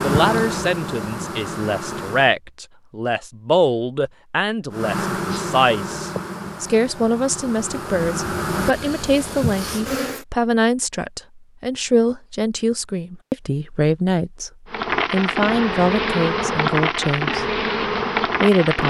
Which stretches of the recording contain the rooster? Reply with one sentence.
The rooster can't be heard in this clip.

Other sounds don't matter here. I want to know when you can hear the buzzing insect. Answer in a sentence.
You can hear the buzzing insect from 0.0 to 2.4 s, from 4.7 to 10.2 s and from 14.7 to 18.8 s.